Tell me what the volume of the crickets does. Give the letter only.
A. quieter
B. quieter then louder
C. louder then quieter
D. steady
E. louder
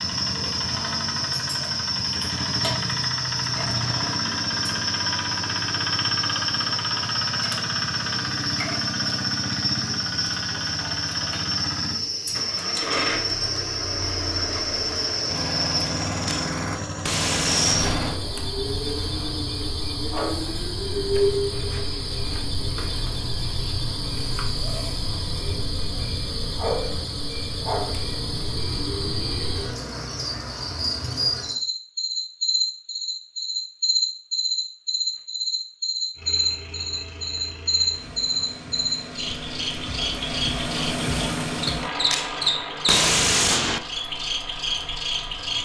D.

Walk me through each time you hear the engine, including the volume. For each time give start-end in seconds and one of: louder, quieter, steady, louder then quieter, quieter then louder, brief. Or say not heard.
0.0-18.2 steady
36.1-45.5 louder then quieter.